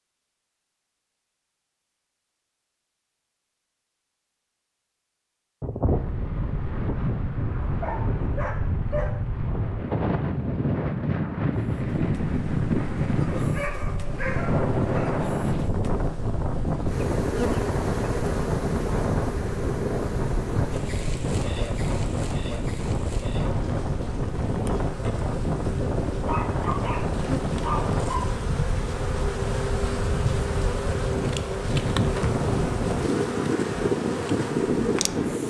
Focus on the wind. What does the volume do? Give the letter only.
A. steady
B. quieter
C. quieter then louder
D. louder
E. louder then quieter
A.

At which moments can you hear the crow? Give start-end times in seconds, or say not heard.
not heard.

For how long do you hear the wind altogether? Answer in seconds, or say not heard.
30 s.